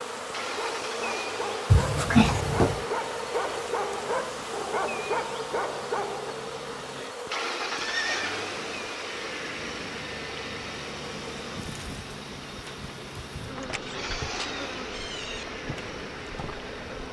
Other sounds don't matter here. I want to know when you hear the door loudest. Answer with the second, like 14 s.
2 s.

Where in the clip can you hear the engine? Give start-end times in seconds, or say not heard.
0.1-17.0.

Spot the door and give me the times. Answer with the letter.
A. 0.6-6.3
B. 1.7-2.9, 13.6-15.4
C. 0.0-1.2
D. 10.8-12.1
B.